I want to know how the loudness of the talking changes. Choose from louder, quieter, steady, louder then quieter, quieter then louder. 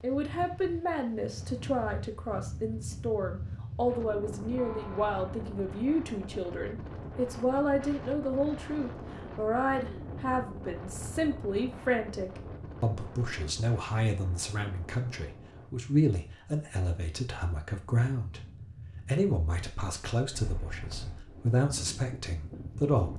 steady.